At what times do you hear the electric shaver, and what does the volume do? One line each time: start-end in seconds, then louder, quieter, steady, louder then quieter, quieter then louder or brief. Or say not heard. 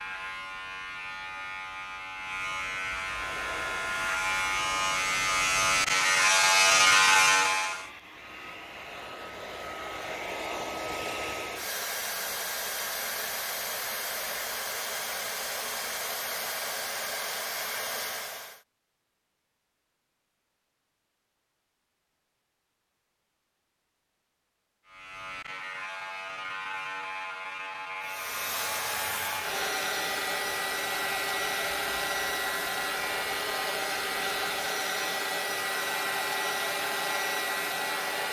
0.0-7.9 louder
24.9-38.2 steady.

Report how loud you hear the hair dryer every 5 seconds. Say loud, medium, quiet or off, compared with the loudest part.
medium, medium, loud, loud, off, loud, loud, loud.